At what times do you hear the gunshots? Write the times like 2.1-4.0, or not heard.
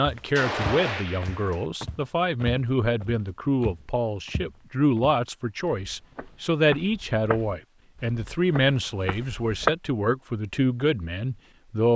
0.3-1.6.